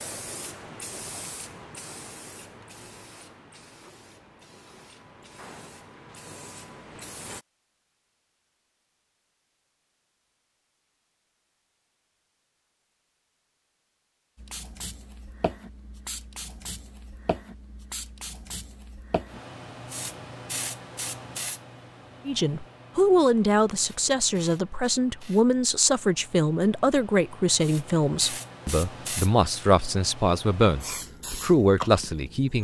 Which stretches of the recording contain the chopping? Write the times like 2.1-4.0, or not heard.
not heard.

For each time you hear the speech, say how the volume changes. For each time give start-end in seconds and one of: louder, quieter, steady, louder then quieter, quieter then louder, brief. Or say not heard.
22.2-32.5 steady.